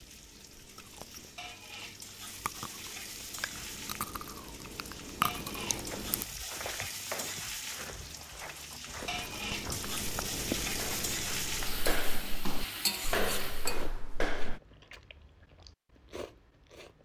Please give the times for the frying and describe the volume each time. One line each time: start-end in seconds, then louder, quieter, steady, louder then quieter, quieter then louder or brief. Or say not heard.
0.0-13.9 louder.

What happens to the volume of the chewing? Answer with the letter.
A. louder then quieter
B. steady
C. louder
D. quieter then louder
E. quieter
A.